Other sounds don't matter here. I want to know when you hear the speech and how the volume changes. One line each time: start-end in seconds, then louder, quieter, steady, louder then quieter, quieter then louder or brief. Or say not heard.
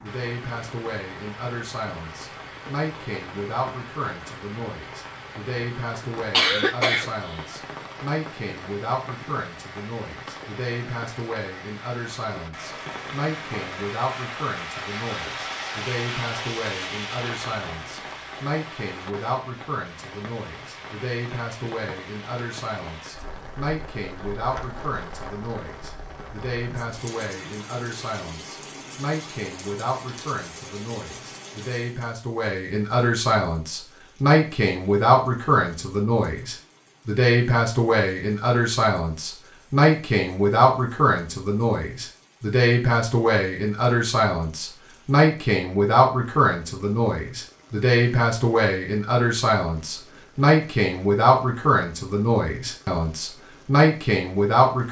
0.0-54.8 louder.